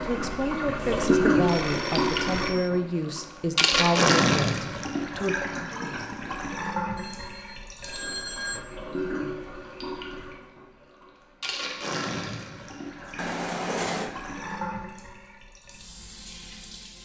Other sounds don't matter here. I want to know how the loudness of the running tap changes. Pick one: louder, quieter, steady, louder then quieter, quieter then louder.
quieter.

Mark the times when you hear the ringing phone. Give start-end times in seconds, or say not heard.
0.8-2.7, 7.0-8.7, 13.2-14.1.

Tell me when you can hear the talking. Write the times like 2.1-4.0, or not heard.
0.0-5.4.